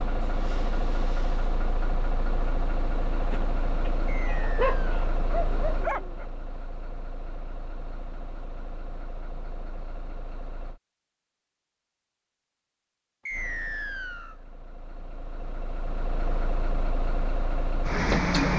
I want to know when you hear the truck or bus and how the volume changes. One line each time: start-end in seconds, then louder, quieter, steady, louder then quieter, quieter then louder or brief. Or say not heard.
0.0-10.8 quieter
13.3-18.5 louder.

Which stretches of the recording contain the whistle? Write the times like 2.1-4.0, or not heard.
4.0-5.0, 13.2-14.3.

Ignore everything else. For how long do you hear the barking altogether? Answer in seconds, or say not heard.
3 s.